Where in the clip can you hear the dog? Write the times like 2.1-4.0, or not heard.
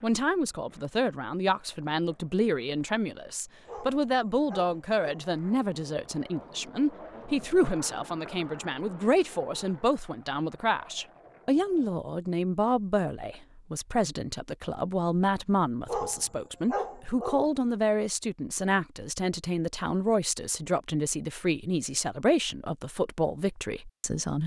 3.6-5.3, 15.8-17.5.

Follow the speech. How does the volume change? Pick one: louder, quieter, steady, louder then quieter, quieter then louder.
steady.